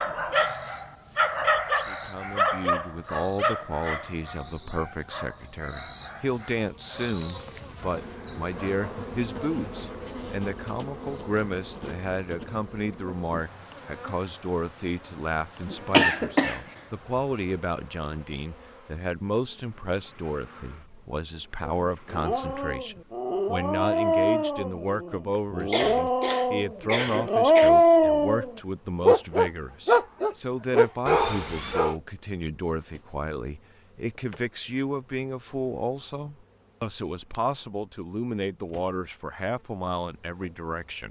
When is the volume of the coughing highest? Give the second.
16 s.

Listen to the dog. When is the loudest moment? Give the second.
28 s.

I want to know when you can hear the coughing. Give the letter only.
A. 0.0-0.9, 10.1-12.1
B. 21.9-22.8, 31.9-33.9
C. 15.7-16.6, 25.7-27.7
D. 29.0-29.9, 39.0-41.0
C.